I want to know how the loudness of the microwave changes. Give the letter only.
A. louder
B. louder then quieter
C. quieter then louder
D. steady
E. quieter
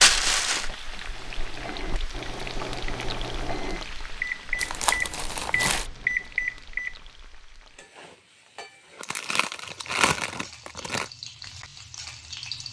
A.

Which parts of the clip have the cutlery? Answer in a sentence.
You can't hear the cutlery here.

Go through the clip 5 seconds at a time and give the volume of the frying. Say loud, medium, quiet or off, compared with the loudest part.
loud, medium, loud.